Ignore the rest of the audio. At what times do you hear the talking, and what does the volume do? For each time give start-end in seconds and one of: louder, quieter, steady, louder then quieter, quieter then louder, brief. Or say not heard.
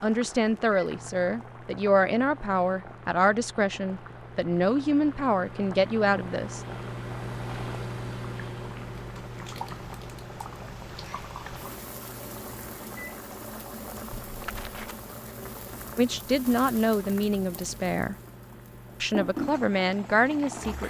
0.0-6.6 steady
15.9-18.1 brief
19.0-20.8 brief.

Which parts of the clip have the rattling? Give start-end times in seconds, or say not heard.
14.1-14.9.